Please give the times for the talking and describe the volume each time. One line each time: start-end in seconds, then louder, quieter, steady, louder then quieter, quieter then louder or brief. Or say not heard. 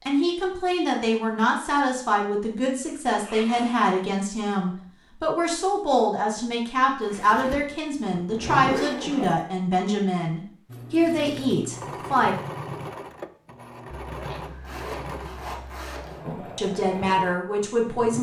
0.1-12.3 steady
16.2-18.1 brief.